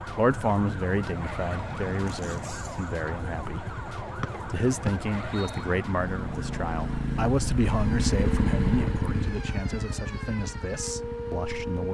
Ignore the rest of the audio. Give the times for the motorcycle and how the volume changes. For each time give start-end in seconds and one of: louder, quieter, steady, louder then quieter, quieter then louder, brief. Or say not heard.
0.0-11.8 louder then quieter.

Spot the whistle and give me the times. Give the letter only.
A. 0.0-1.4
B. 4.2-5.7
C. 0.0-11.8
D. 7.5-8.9
B.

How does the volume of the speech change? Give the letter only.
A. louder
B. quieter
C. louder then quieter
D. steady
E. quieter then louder
B.